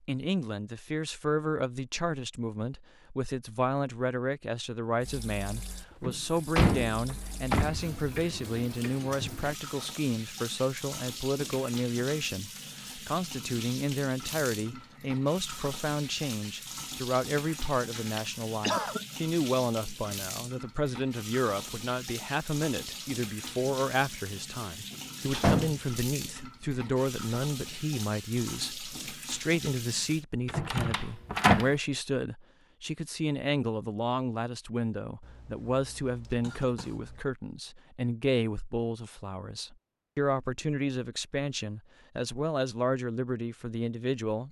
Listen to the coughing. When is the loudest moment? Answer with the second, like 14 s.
19 s.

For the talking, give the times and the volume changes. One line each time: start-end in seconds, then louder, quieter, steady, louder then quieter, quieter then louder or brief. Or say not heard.
0.1-44.4 steady.